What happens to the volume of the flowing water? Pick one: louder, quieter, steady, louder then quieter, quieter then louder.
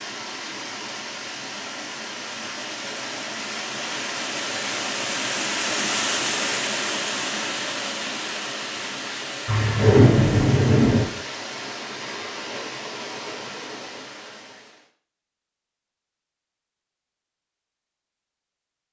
louder then quieter.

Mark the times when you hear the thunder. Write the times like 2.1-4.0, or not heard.
9.4-11.1.